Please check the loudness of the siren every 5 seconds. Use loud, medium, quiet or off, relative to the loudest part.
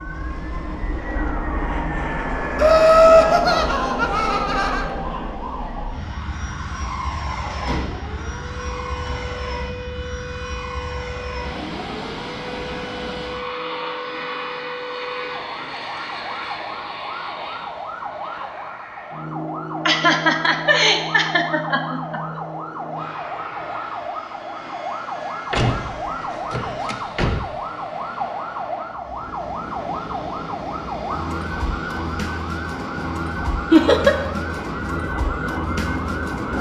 medium, medium, medium, medium, loud, loud, loud, loud.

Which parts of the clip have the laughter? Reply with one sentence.
The laughter can be heard from 2.5 to 4.8 s, from 19.9 to 22.2 s and from 33.7 to 34.1 s.